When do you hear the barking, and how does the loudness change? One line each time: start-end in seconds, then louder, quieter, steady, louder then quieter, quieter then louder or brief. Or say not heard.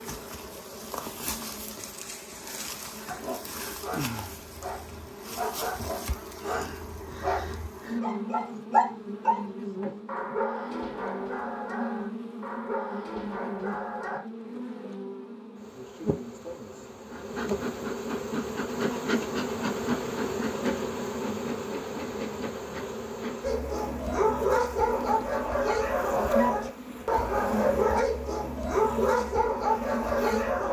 3.0-14.2 louder then quieter
23.4-30.6 steady.